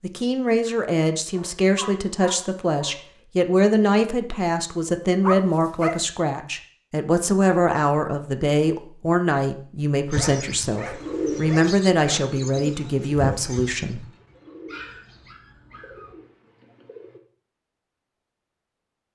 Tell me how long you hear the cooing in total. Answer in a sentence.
You can hear the cooing for 7 seconds altogether.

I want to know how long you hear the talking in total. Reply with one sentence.
The talking can be heard for 14 seconds in total.